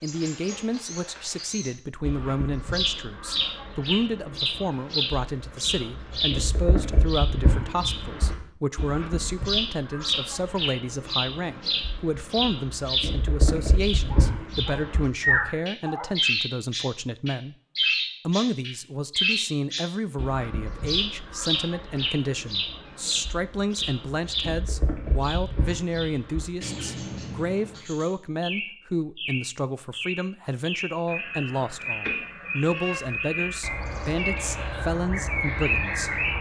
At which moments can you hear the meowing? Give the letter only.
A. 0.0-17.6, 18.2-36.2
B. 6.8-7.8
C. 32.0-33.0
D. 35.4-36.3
C.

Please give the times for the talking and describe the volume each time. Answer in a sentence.
The talking can be heard from 0.0 to 17.6 s, at a steady volume; and from 18.2 to 36.2 s, at a steady volume.